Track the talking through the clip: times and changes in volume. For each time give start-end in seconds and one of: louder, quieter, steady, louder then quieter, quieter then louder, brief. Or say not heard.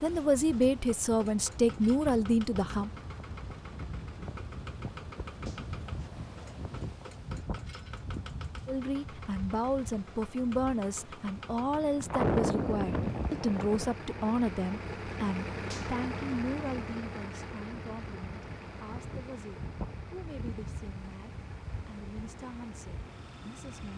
0.0-2.9 brief
8.7-23.9 quieter.